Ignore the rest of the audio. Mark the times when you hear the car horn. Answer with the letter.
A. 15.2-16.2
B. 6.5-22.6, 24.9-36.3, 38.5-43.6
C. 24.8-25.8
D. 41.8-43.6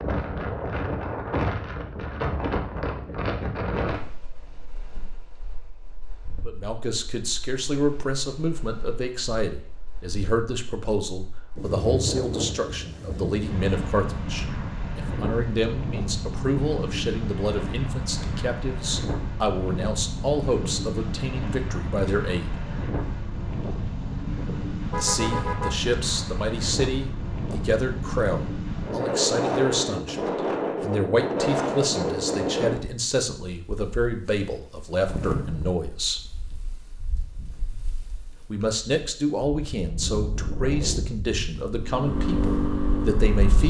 C.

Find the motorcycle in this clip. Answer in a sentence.
You can hear the motorcycle from 41.8 to 43.6 s.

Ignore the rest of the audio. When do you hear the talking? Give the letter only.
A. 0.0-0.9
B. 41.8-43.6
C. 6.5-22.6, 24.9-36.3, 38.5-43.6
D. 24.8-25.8
C.